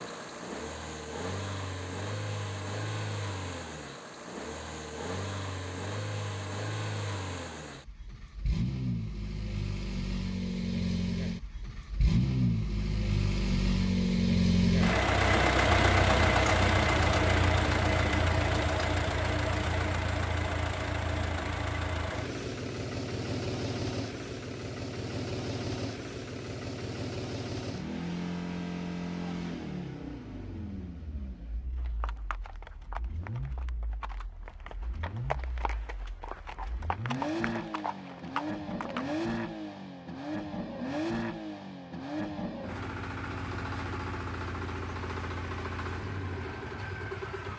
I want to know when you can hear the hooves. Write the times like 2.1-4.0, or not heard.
31.8-39.0.